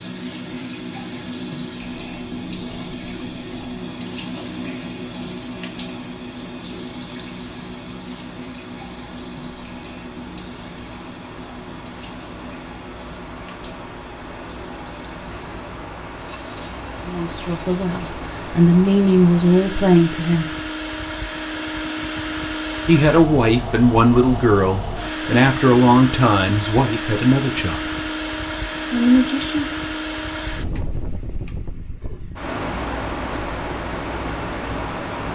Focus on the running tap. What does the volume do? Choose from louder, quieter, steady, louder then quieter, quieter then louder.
quieter.